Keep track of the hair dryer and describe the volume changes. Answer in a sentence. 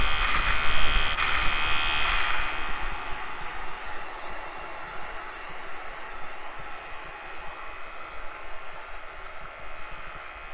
The loudness of the hair dryer goes down.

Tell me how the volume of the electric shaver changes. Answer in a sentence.
The volume of the electric shaver goes down.